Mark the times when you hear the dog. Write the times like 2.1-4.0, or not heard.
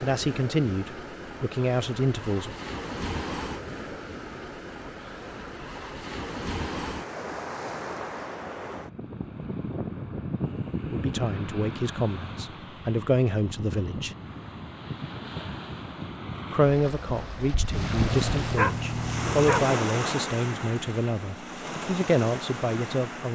18.1-19.8.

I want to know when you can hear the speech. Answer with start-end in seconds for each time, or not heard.
0.0-2.5, 10.8-14.2, 16.5-23.3.